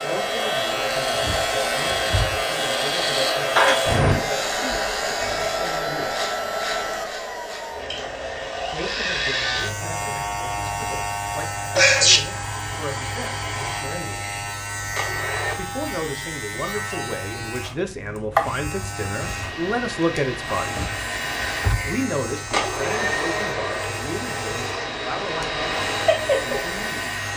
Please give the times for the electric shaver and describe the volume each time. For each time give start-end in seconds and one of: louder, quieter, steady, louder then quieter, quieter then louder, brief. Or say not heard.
0.0-27.3 quieter.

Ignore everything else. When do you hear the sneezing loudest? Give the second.
12 s.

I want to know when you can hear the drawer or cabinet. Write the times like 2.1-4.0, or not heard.
1.1-2.5, 20.6-22.0.